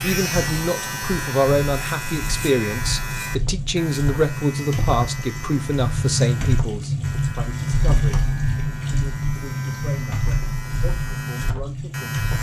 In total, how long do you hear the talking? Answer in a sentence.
The talking can be heard for 12 seconds in total.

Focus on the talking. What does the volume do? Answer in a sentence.
The volume of the talking goes down.